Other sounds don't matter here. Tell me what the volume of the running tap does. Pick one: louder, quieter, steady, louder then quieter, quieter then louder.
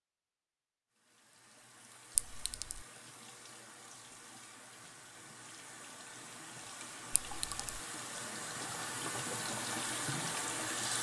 louder.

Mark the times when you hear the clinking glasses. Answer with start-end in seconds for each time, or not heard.
2.1-2.9, 7.2-7.7.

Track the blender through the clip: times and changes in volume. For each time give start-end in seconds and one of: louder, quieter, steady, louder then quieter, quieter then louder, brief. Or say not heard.
not heard.